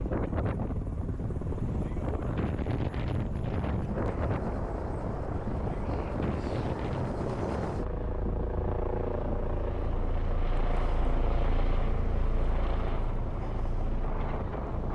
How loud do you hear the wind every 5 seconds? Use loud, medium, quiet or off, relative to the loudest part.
loud, loud, medium.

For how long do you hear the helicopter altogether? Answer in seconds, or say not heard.
15 s.